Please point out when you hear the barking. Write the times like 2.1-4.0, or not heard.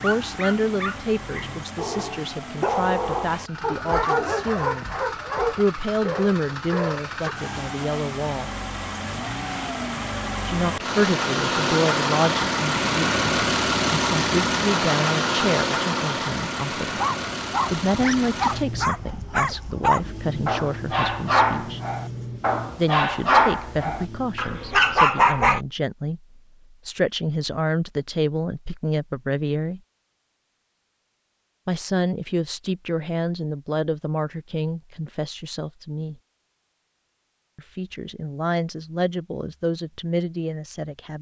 0.0-7.3, 16.9-25.6.